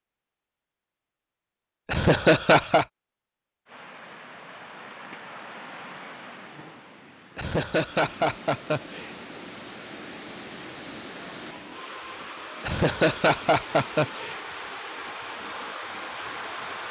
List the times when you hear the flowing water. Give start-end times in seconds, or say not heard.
3.6-16.8.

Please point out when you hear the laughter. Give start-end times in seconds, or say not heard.
1.9-2.9, 7.3-9.1, 12.6-14.4.